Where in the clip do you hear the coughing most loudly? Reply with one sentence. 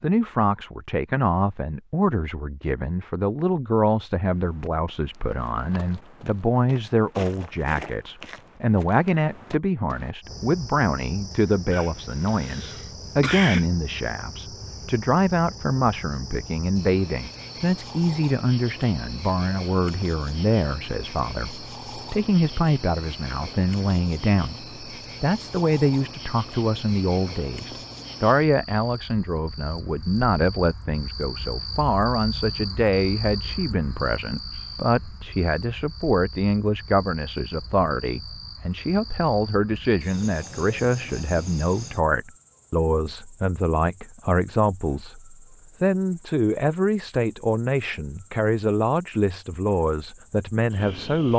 The volume of the coughing peaks at 13 seconds.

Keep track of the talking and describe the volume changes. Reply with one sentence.
The loudness of the talking stays about the same.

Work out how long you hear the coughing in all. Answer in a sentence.
You can hear the coughing for 2 seconds altogether.